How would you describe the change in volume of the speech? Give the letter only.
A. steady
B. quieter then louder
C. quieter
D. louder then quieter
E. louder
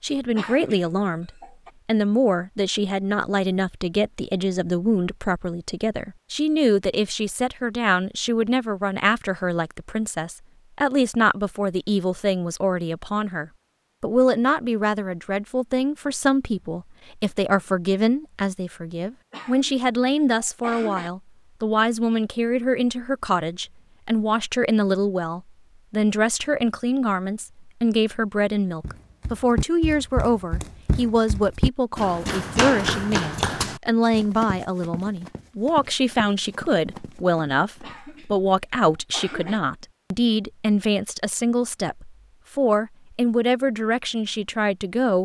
A.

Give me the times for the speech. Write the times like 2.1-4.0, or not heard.
0.0-45.2.